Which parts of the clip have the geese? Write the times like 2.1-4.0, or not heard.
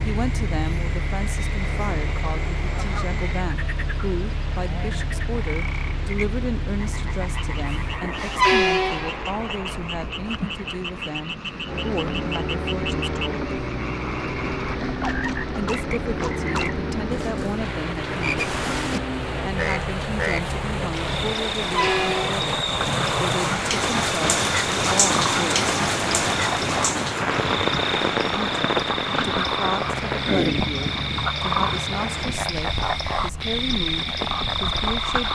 1.6-3.5.